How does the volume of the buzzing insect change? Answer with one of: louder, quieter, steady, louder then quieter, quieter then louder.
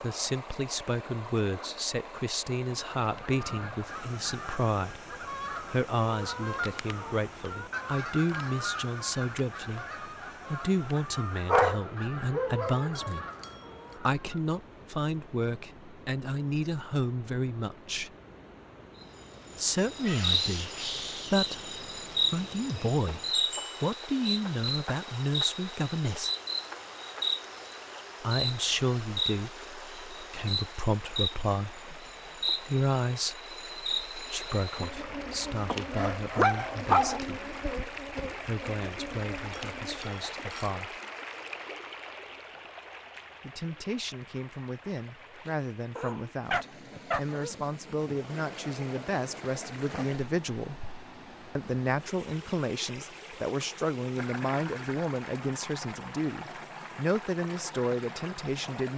quieter.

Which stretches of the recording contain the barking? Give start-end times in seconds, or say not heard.
11.4-13.1, 35.7-37.2, 46.0-47.5.